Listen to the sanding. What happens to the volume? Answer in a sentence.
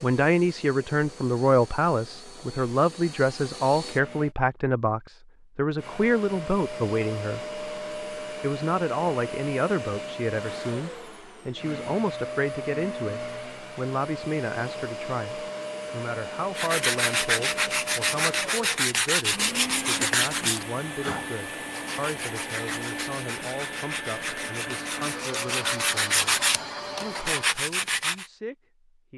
The volume of the sanding goes down, then up.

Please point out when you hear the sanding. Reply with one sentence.
You can hear the sanding from 16.6 to 28.2 s.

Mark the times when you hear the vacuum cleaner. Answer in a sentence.
You can hear the vacuum cleaner from 0.0 to 4.3 s and from 5.8 to 27.5 s.